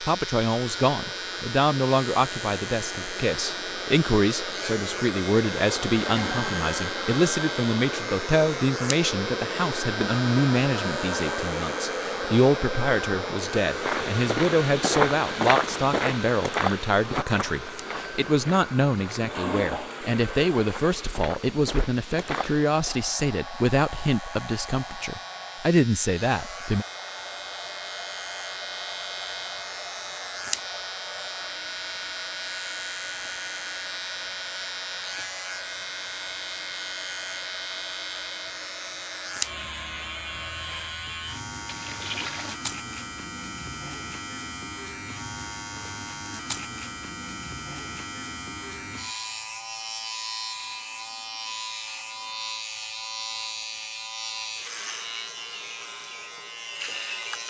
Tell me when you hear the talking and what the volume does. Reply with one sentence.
You can hear the talking from 0.0 to 26.9 s, at a steady volume.